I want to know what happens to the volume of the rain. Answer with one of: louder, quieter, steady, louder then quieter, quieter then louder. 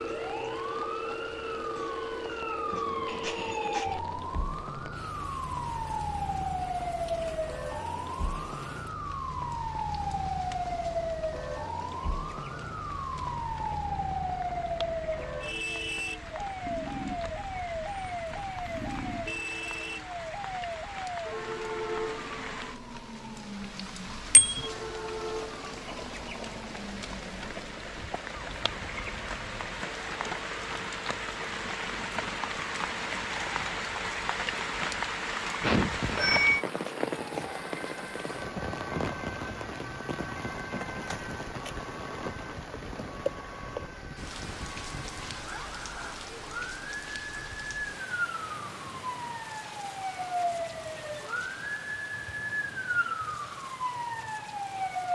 louder then quieter.